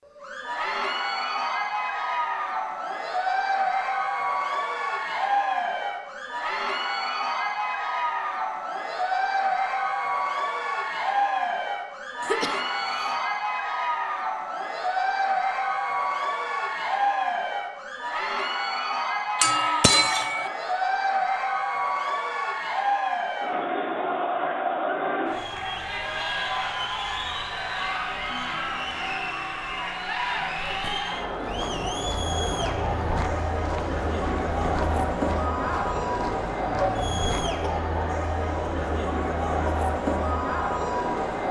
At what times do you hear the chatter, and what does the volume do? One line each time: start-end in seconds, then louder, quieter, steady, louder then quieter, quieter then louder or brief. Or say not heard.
0.1-41.4 steady.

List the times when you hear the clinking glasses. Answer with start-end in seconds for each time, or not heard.
19.4-20.5.